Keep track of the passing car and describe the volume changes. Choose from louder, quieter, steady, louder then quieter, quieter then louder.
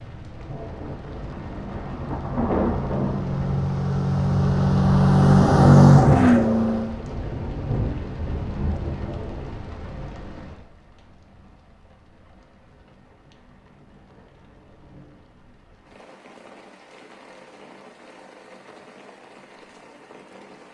louder.